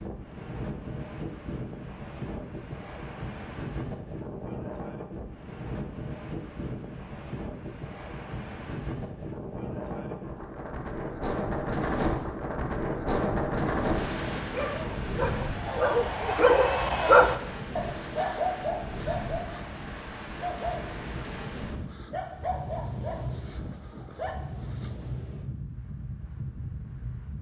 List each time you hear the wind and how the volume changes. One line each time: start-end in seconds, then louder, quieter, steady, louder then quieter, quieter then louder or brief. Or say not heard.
0.0-27.3 louder then quieter.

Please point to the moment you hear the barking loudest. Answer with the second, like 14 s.
17 s.